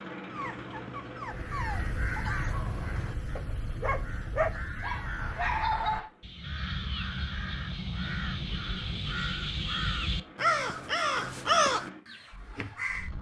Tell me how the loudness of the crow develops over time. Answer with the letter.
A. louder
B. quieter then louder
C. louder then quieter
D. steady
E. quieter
A.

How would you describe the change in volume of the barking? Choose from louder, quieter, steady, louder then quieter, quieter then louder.
louder.